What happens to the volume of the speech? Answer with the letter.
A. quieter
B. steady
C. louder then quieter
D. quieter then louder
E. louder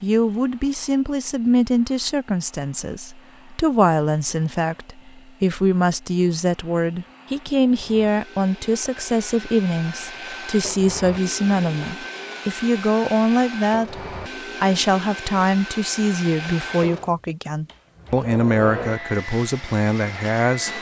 B.